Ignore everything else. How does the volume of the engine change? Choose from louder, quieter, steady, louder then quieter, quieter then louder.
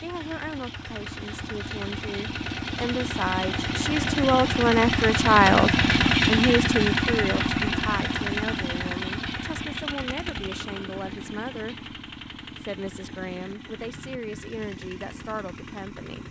louder then quieter.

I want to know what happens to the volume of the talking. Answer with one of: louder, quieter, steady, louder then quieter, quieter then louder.
louder then quieter.